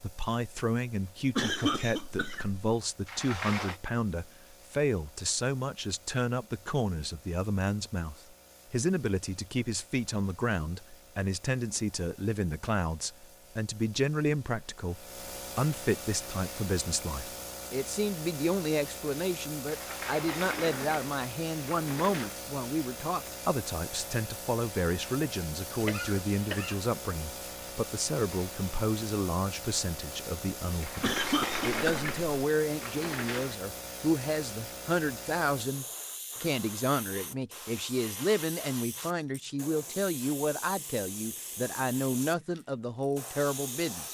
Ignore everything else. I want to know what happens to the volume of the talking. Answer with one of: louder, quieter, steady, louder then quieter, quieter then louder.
steady.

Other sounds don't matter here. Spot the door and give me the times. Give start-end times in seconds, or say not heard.
3.0-3.8, 19.6-22.4, 30.8-33.5.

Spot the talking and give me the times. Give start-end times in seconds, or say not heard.
0.0-44.0.